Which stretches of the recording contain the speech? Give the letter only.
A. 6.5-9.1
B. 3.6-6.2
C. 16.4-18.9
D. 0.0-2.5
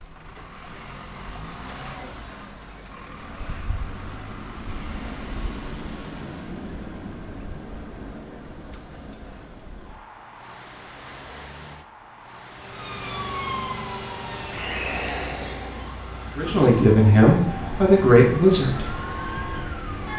C.